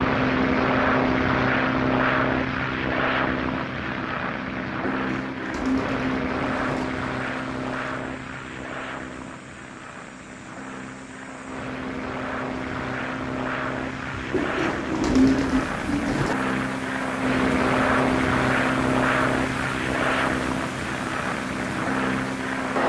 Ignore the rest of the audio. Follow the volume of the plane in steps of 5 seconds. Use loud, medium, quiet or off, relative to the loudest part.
loud, medium, medium, loud, loud.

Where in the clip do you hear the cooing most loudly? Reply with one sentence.
The loudest moment of the cooing is at 15 seconds.